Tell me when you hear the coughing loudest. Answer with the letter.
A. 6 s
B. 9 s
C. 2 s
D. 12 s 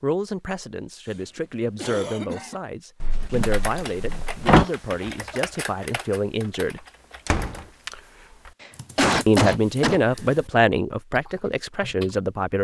B.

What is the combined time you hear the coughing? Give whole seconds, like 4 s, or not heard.
4 s.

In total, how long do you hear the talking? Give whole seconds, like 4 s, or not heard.
10 s.